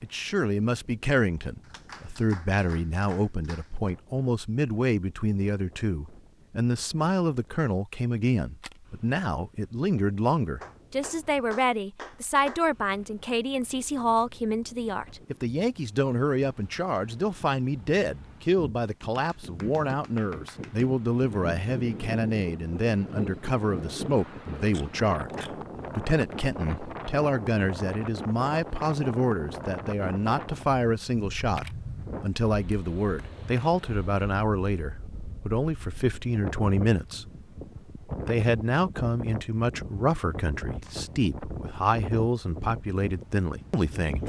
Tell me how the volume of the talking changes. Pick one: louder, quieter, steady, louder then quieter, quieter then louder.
steady.